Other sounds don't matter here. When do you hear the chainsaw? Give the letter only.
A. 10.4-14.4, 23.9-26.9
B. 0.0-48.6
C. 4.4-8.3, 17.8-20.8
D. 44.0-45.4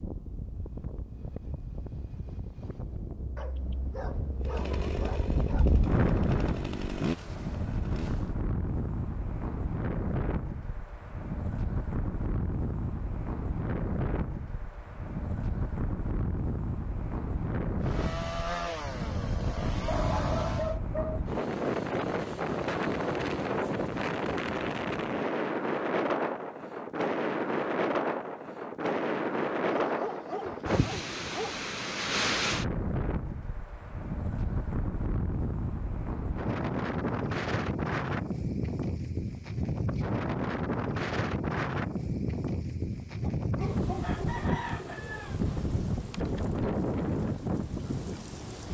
C.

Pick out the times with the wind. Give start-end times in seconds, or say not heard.
0.0-48.6.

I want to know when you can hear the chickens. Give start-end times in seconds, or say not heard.
44.0-45.4.